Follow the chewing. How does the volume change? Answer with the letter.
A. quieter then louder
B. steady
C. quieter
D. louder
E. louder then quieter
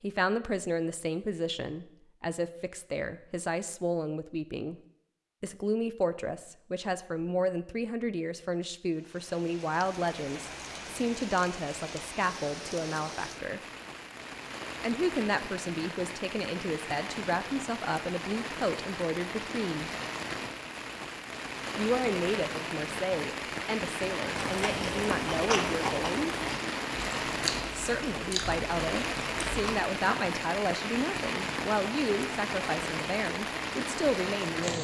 C.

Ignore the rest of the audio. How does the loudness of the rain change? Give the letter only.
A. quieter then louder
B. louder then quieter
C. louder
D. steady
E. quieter
C.